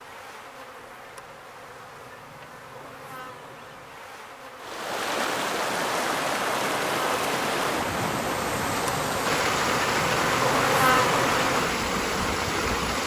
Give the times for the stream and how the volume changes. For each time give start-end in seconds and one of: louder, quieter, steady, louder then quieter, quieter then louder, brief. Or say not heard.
4.5-13.0 steady.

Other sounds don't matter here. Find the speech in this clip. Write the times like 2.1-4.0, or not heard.
not heard.